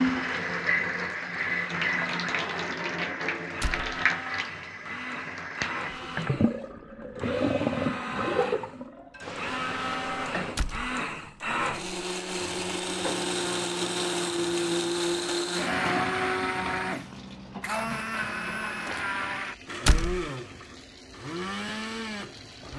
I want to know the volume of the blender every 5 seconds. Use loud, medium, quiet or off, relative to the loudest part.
medium, medium, loud, loud, medium.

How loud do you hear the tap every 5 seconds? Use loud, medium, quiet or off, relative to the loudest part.
loud, loud, medium, quiet, quiet.